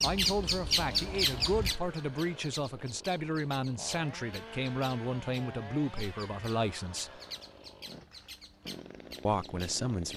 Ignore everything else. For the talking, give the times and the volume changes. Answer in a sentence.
The talking can be heard from 0.0 to 7.2 s, at a steady volume; and briefly from 9.2 to 10.1 s.